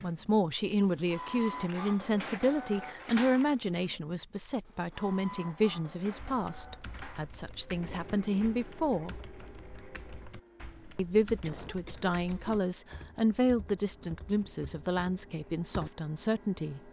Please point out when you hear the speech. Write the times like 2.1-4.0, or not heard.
0.0-9.2, 10.9-16.8.